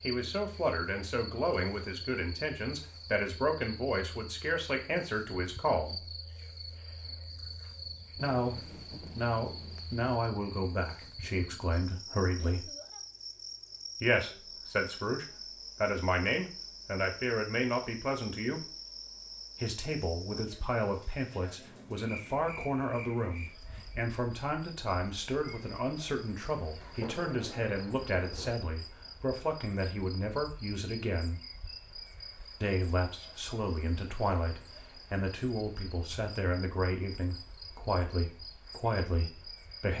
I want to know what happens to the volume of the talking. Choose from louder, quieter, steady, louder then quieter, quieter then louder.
steady.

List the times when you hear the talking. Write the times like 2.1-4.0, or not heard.
0.0-6.0, 8.2-12.7, 14.0-18.6, 19.6-31.4, 32.6-39.9.